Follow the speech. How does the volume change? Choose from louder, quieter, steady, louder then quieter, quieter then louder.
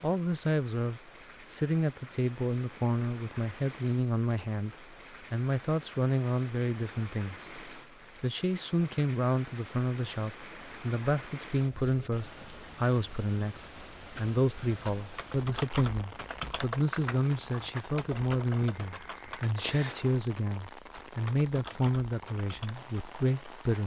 steady.